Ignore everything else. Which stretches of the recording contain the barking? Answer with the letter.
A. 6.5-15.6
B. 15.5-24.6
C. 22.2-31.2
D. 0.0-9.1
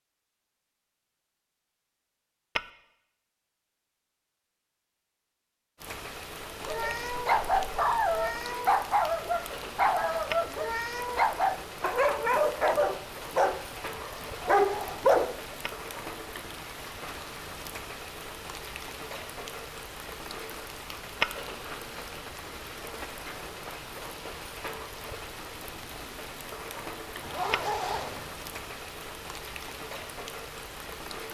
A.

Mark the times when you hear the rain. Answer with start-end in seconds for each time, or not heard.
5.8-31.2.